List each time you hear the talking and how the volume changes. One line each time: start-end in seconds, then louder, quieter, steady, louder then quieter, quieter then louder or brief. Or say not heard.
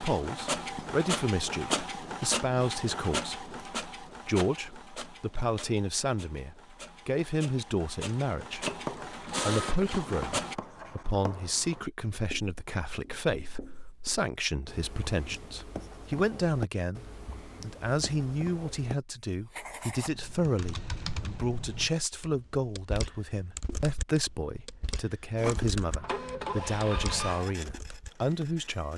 0.0-28.9 steady.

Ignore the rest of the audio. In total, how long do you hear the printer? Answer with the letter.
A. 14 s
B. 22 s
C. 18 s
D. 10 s
A.